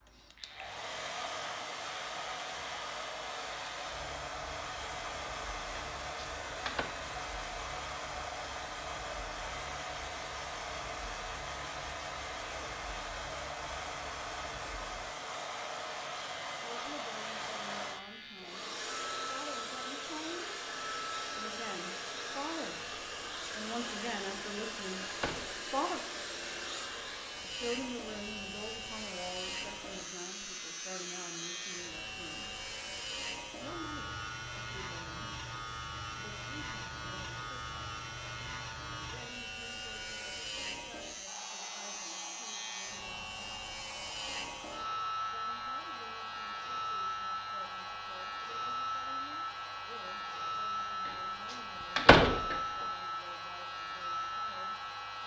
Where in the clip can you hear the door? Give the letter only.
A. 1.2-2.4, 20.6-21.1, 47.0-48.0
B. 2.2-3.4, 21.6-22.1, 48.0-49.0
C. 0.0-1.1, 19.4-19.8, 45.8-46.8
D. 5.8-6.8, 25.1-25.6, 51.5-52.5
D.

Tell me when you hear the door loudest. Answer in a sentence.
The volume of the door peaks at 52 seconds.